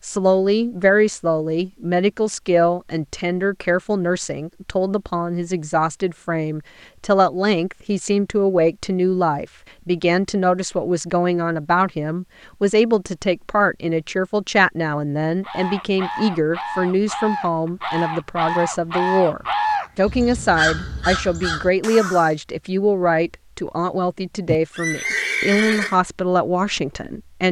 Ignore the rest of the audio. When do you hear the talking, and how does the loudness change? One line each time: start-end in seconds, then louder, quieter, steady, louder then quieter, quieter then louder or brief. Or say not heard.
0.0-27.4 steady.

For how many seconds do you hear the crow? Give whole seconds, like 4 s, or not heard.
7 s.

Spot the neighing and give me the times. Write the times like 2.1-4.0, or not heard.
24.4-25.9.